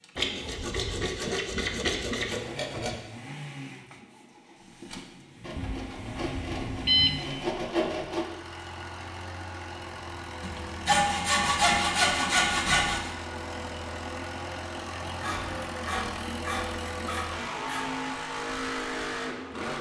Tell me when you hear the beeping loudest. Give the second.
7 s.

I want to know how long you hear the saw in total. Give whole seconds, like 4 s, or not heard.
11 s.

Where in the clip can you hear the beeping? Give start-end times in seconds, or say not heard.
5.5-7.2.